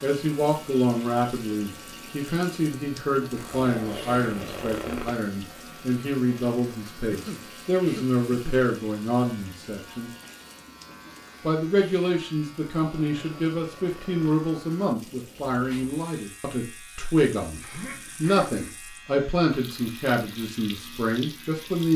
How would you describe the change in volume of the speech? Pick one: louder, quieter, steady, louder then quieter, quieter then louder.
steady.